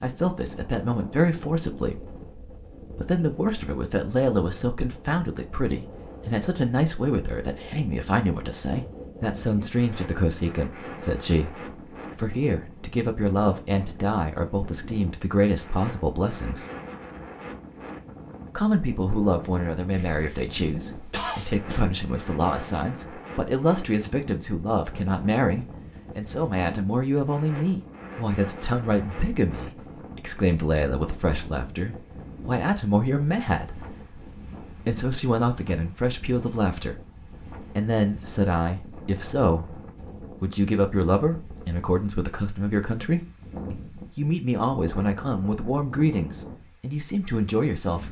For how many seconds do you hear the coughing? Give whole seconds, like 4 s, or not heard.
2 s.